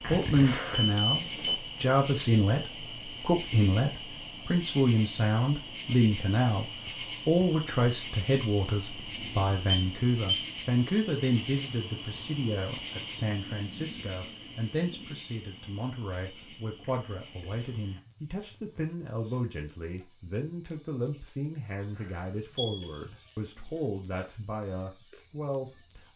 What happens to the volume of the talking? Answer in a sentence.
The volume of the talking goes down.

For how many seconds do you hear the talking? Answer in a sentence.
You can hear the talking for 26 seconds altogether.